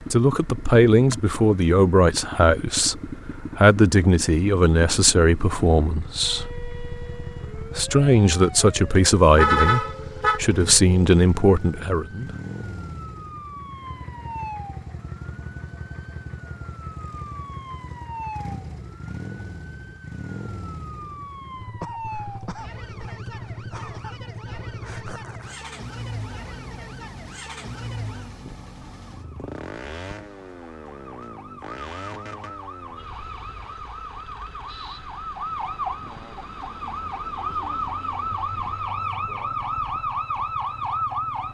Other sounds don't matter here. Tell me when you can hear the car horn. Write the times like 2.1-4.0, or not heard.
8.9-10.4.